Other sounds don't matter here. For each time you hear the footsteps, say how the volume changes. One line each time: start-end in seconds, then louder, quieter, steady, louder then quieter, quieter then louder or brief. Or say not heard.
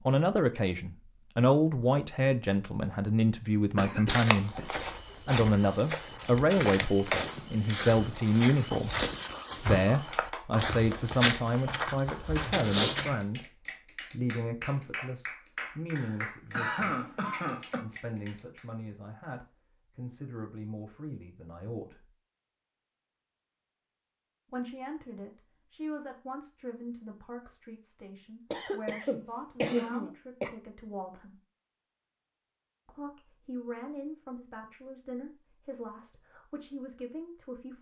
4.0-13.2 louder.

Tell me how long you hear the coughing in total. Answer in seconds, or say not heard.
5 s.